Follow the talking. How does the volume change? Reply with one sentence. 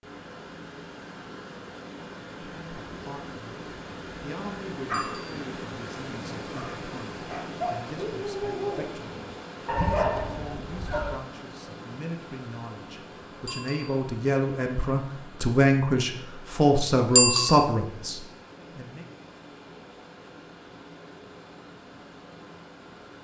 The volume of the talking goes up.